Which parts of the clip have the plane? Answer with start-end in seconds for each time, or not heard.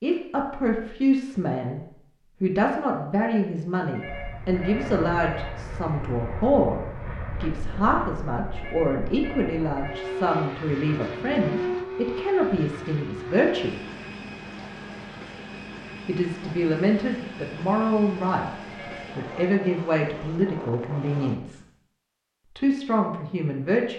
4.0-21.4.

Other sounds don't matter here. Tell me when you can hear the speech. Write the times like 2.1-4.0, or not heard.
0.0-1.8, 2.4-6.8, 7.4-13.8, 16.1-18.4, 19.1-21.6, 22.6-23.9.